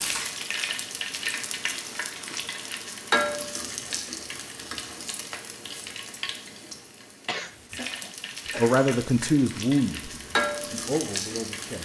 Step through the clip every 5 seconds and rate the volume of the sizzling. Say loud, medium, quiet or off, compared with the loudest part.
loud, medium, loud.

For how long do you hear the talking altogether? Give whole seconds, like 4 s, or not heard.
3 s.